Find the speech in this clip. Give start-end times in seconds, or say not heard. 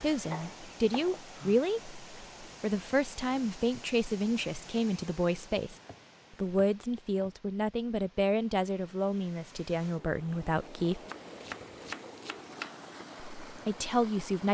0.0-5.8, 6.4-11.0, 13.4-14.4.